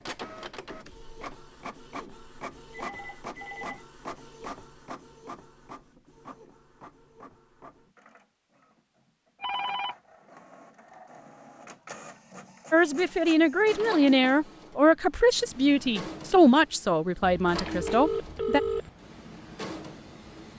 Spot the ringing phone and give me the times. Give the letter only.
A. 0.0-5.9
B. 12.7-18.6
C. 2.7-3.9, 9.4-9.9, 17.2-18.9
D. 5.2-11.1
C.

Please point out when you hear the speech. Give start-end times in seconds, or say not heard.
12.7-18.6.